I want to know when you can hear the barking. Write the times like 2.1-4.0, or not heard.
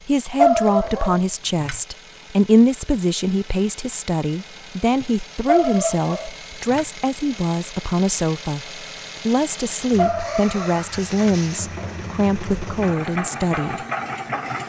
0.3-1.8, 5.5-6.8, 9.9-11.3.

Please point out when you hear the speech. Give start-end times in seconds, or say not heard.
0.1-13.8.